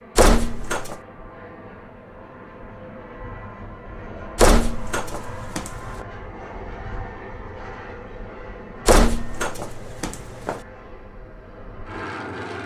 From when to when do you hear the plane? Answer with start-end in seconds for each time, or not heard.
0.0-12.6.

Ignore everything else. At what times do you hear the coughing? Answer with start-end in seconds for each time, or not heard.
not heard.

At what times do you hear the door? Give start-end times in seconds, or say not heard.
0.1-0.9, 4.3-6.0, 8.8-10.6.